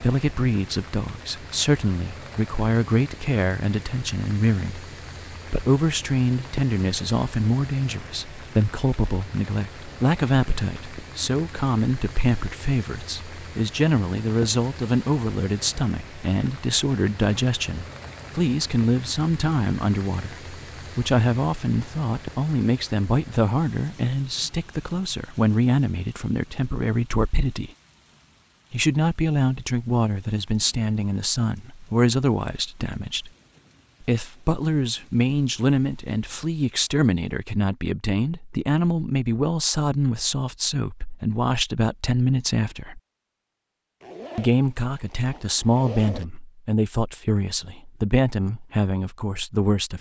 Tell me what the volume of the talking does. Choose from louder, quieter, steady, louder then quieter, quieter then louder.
steady.